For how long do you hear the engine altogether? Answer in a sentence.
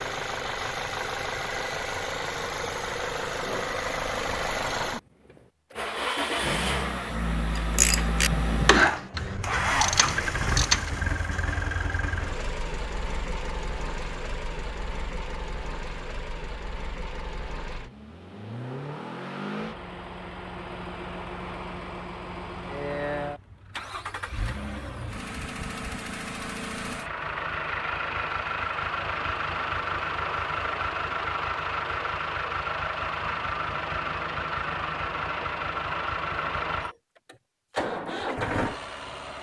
The engine can be heard for 39 seconds in total.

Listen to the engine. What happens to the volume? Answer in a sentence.
The loudness of the engine goes down, then up.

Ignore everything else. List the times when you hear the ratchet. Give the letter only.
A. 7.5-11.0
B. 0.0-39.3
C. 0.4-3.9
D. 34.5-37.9
A.